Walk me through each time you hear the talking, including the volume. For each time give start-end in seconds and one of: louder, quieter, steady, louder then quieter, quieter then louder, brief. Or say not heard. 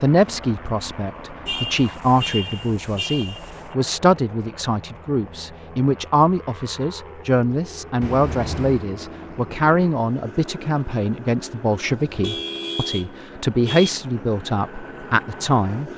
0.0-15.9 steady.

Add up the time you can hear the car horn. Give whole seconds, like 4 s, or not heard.
5 s.